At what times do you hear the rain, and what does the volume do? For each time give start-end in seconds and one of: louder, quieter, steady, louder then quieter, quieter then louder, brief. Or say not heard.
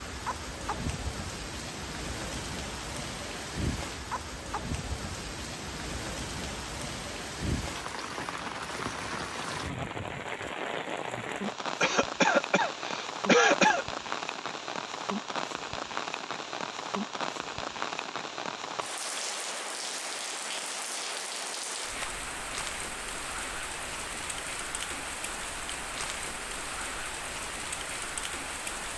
0.0-28.9 steady.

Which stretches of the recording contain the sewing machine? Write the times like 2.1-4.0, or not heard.
not heard.